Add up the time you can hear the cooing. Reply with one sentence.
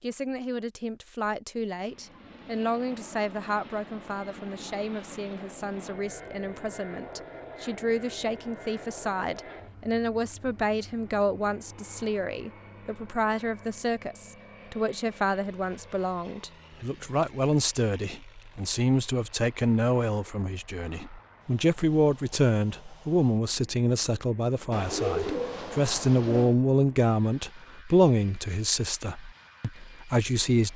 The cooing can be heard for 2 seconds in total.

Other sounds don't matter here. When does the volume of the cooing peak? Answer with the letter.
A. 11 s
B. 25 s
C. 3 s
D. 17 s
B.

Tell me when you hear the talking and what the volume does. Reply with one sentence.
The talking can be heard from 0.0 to 30.7 s, getting louder.